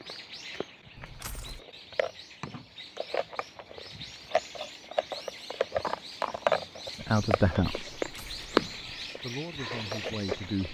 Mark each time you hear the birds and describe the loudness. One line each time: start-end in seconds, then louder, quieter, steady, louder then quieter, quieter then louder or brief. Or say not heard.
0.0-10.6 louder.